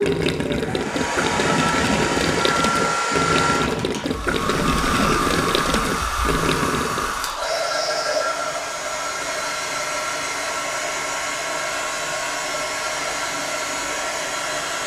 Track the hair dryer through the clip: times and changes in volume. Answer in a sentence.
The hair dryer can be heard from 0.0 to 14.8 s, at a steady volume.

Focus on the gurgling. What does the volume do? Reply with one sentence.
The volume of the gurgling stays about the same.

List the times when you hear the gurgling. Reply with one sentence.
The gurgling can be heard from 0.0 to 7.2 s.